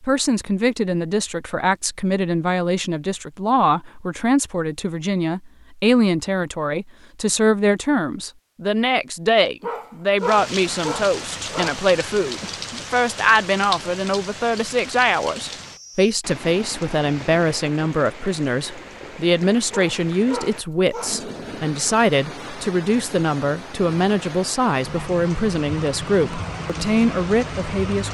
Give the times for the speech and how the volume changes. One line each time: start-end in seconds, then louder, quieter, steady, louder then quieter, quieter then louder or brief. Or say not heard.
0.0-28.0 steady.